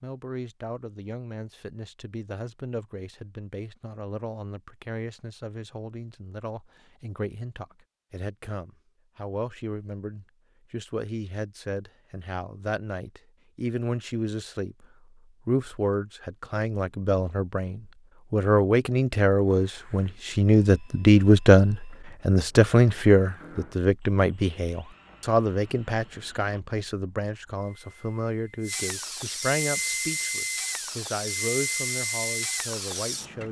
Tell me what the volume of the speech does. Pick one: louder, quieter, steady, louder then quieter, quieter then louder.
louder then quieter.